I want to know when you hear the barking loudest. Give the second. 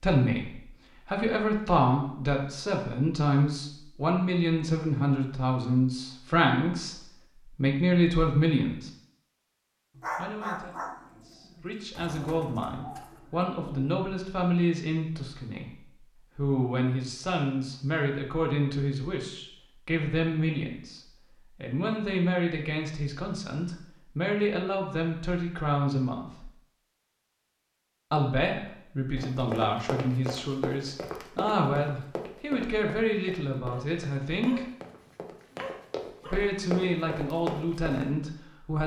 10 s.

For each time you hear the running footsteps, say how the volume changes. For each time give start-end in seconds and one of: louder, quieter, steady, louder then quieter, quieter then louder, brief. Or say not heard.
29.1-38.0 quieter then louder.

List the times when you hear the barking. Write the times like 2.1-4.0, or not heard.
9.9-11.7, 33.7-36.4.